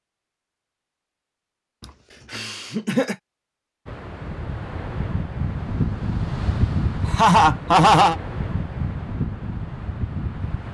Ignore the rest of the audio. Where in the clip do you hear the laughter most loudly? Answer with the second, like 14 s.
8 s.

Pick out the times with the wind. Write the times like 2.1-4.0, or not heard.
3.9-10.6.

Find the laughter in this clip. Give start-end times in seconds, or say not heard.
1.8-3.1, 7.0-8.2.